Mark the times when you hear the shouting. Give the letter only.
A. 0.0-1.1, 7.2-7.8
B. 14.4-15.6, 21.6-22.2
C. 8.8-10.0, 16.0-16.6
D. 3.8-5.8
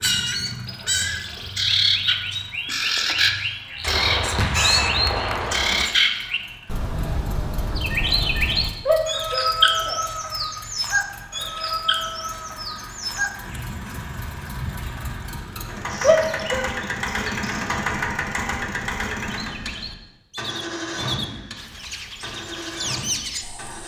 C.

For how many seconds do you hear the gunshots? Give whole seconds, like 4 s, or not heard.
2 s.